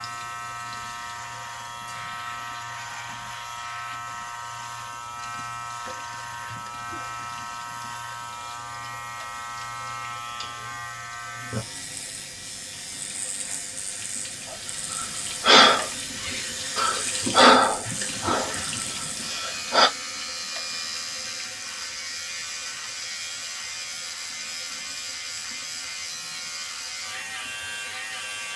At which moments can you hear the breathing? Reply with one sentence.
The breathing can be heard from 14.9 to 18.6 s and from 19.4 to 19.9 s.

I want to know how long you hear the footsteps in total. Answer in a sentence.
You can't hear the footsteps here.